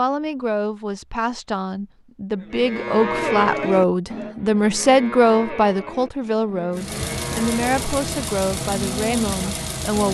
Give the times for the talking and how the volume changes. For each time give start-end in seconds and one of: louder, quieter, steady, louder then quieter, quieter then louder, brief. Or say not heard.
0.0-10.0 louder then quieter.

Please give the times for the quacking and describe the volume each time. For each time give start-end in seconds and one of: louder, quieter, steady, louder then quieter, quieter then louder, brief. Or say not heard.
not heard.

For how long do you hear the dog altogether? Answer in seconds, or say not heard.
not heard.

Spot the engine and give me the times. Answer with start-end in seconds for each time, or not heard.
6.7-10.0.